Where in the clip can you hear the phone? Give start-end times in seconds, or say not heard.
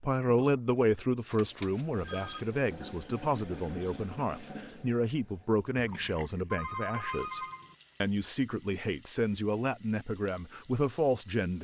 1.3-2.5, 6.5-7.8.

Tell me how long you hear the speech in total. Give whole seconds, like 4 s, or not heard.
11 s.